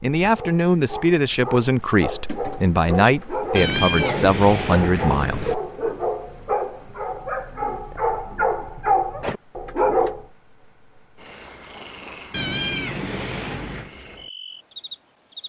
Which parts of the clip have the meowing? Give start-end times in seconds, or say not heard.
3.5-5.5, 12.3-13.9.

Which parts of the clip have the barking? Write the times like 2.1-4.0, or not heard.
0.1-10.2.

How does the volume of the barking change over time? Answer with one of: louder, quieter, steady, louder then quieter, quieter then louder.
louder.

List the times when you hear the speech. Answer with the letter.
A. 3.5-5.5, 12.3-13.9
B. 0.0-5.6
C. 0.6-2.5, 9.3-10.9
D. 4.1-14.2
B.